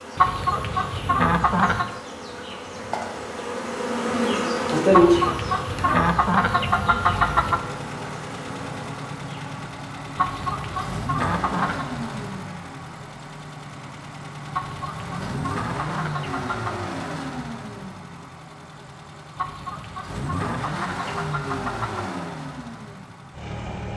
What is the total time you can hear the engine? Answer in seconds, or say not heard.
17 s.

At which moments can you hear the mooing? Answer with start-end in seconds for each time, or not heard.
not heard.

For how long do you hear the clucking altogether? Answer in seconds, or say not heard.
11 s.